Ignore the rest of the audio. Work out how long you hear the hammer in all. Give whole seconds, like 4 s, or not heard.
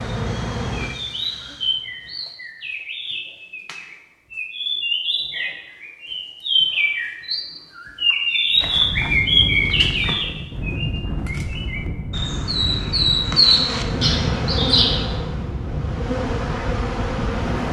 not heard.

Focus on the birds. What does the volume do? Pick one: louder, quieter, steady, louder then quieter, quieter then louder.
louder.